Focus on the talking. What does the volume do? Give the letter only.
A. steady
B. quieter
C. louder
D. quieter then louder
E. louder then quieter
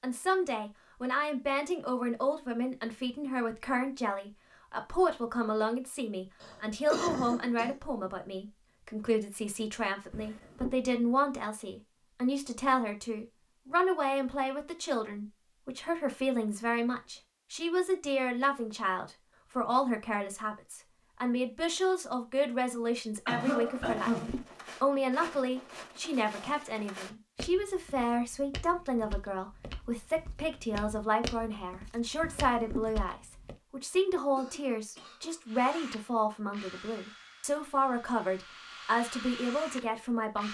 A.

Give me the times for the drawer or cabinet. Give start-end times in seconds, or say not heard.
10.1-10.8, 23.8-24.5, 32.2-32.9.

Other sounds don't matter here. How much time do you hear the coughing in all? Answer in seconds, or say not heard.
4 s.